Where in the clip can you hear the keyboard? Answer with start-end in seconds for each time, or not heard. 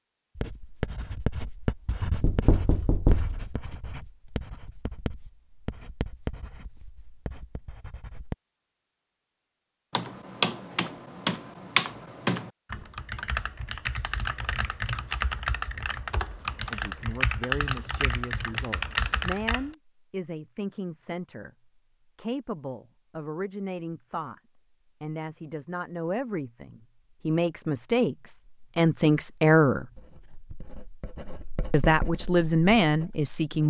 9.9-19.7.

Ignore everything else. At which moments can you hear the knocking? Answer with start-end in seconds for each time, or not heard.
2.2-3.4.